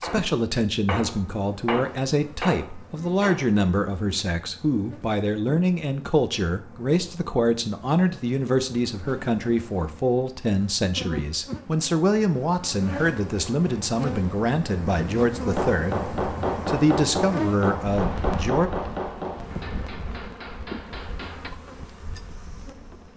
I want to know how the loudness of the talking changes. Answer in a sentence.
The loudness of the talking stays about the same.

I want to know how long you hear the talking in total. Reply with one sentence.
You can hear the talking for 19 seconds altogether.